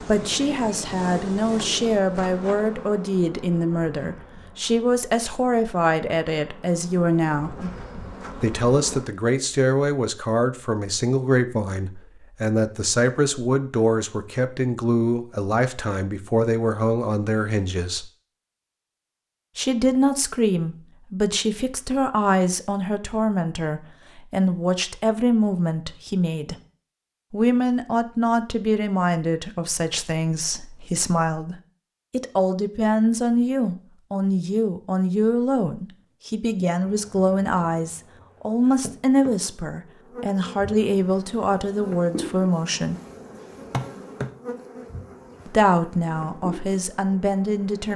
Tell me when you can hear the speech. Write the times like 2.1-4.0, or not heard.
0.0-7.5, 8.4-18.1, 19.6-26.6, 27.3-43.0, 45.5-47.9.